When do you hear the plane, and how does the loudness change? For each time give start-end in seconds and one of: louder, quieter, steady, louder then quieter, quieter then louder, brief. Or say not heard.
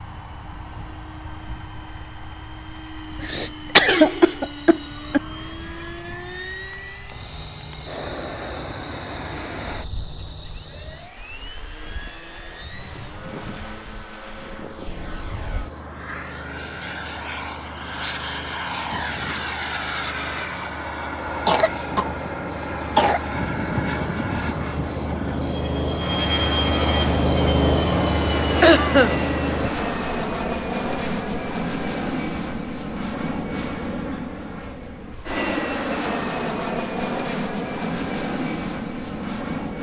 0.0-39.7 louder.